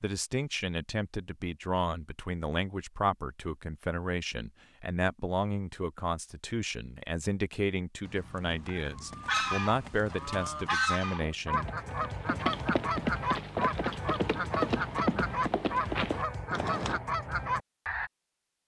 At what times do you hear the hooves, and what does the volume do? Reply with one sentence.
The hooves can be heard from 8.0 to 17.0 s, getting louder.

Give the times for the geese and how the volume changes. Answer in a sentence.
The geese can be heard from 8.8 to 18.1 s, at a steady volume.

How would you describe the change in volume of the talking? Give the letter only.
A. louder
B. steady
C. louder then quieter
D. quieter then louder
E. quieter
B.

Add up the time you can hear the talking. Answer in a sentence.
You can hear the talking for 12 seconds altogether.